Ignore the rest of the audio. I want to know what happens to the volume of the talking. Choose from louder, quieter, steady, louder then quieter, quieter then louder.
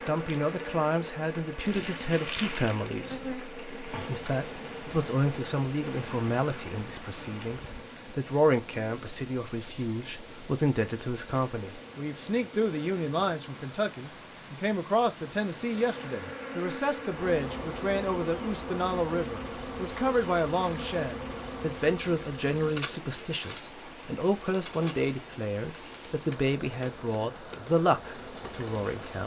steady.